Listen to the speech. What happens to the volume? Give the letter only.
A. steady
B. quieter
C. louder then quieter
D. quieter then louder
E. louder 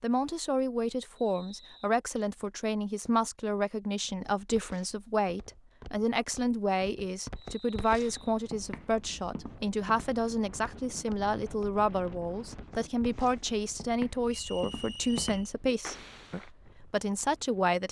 A.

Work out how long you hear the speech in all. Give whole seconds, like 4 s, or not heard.
18 s.